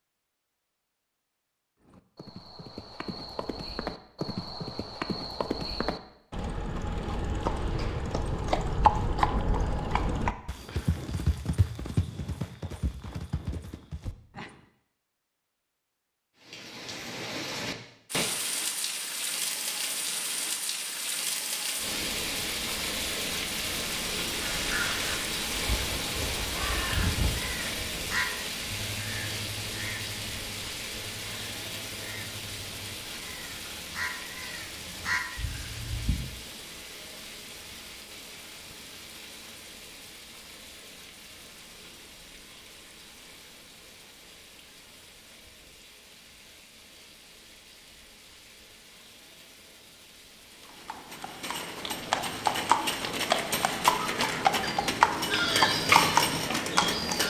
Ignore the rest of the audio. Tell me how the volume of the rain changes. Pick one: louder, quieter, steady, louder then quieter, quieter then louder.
quieter.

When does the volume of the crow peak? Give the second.
56 s.